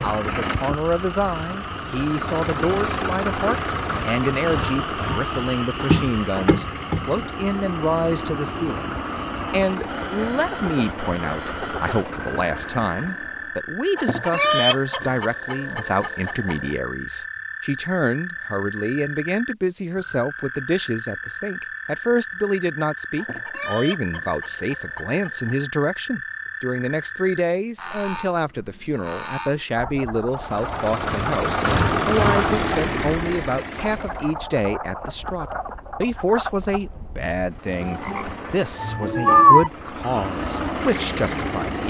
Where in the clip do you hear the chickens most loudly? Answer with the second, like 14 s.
15 s.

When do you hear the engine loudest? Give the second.
32 s.